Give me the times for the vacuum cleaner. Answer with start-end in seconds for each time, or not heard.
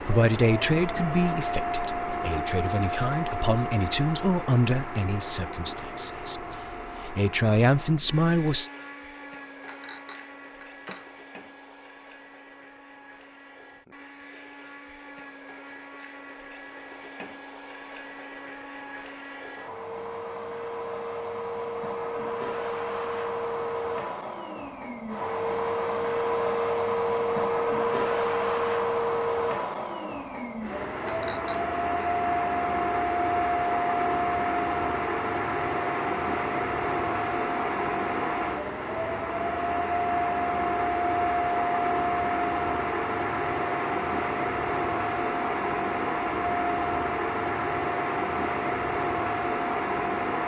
0.0-50.4.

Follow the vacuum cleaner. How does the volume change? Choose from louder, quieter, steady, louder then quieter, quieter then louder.
quieter then louder.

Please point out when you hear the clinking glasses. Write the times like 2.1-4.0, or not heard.
9.7-11.1, 31.1-32.1.